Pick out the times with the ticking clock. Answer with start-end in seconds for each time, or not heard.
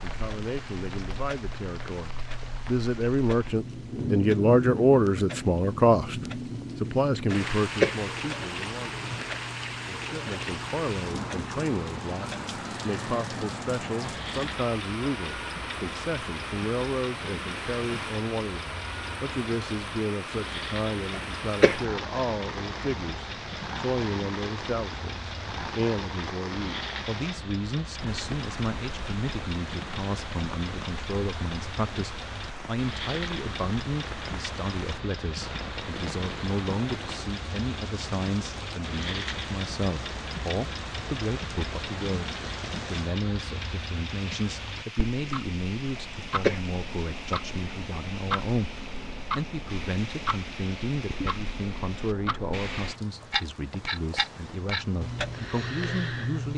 0.1-56.5.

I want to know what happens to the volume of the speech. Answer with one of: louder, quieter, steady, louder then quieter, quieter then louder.
quieter.